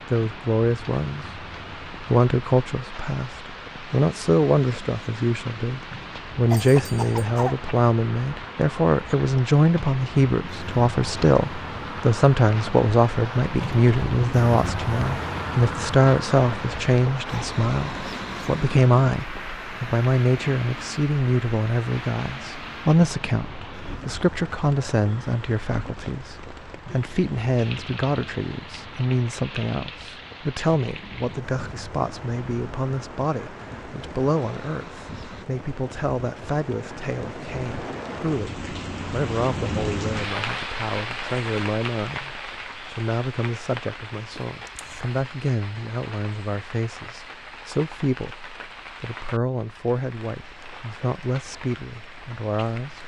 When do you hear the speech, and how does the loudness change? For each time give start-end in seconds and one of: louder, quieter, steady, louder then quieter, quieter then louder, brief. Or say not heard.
0.1-53.0 quieter.